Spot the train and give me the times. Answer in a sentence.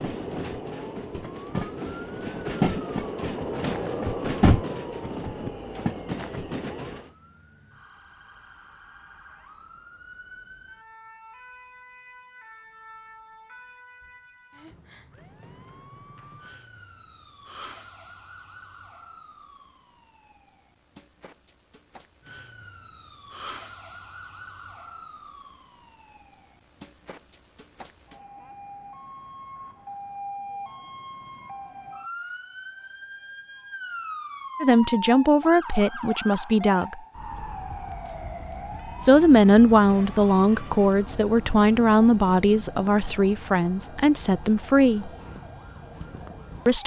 You can hear the train from 0.0 to 7.0 s.